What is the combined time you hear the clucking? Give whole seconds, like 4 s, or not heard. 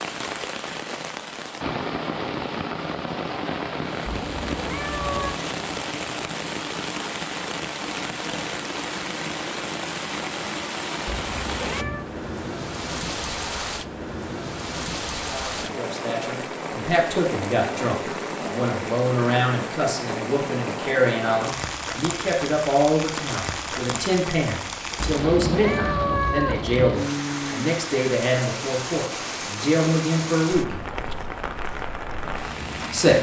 not heard.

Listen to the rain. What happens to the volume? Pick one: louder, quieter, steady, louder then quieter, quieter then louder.
steady.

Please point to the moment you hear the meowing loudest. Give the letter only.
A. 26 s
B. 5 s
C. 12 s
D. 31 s
A.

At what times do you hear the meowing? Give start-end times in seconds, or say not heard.
4.0-5.3, 11.1-12.1, 24.9-26.9.